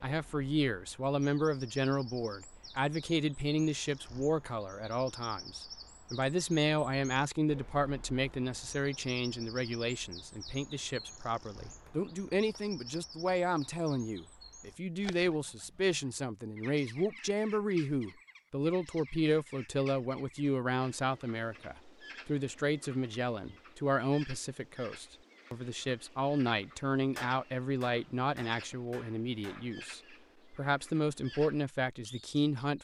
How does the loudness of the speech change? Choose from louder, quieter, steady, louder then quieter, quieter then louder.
steady.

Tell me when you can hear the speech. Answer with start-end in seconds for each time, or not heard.
0.0-32.8.